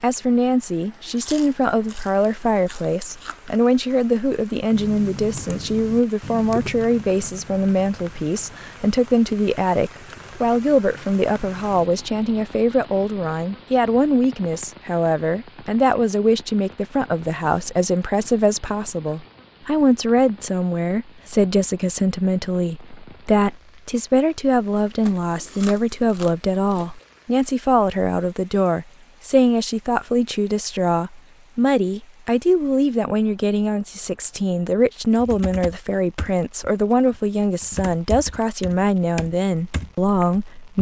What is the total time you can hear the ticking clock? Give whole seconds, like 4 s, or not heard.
not heard.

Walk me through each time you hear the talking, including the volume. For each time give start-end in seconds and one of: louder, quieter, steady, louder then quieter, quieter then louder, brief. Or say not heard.
0.0-40.7 steady.